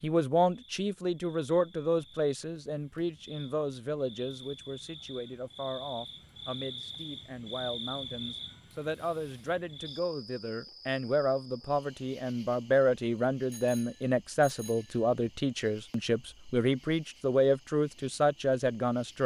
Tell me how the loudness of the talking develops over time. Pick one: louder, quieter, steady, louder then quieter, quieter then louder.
quieter then louder.